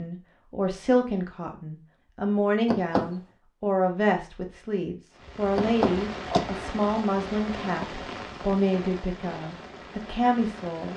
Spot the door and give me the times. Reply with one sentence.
The door can be heard from 2.6 to 3.1 s and from 5.5 to 6.5 s.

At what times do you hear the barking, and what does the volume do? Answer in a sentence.
You can't hear the barking here.